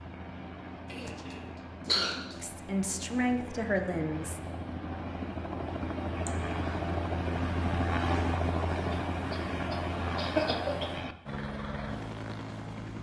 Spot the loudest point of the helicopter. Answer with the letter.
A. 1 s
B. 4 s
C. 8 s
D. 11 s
C.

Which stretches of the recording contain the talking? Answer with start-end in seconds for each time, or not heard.
2.4-4.4.